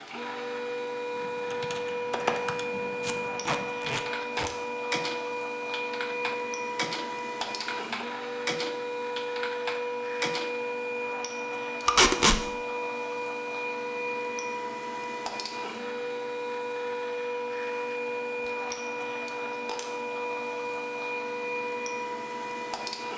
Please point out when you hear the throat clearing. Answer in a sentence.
You can't hear the throat clearing here.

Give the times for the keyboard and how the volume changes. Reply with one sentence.
The keyboard can be heard from 1.1 to 11.1 s, at a steady volume.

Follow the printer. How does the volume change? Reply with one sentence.
The volume of the printer stays about the same.